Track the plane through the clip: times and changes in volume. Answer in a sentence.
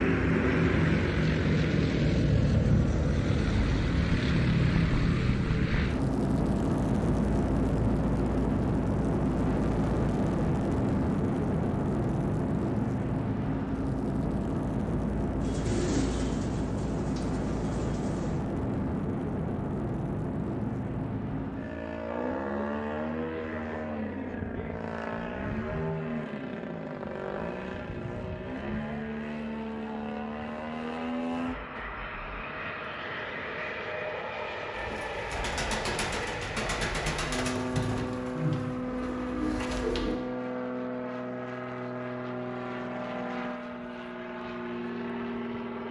The plane can be heard from 0.0 to 45.8 s, getting quieter.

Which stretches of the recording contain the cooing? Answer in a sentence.
The cooing can be heard from 15.4 to 18.4 s and from 34.8 to 40.2 s.